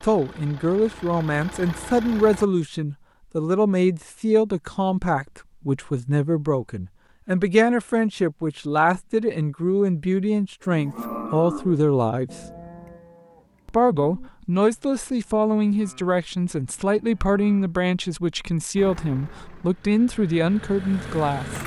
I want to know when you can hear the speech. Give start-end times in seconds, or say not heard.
0.0-12.3, 13.7-21.6.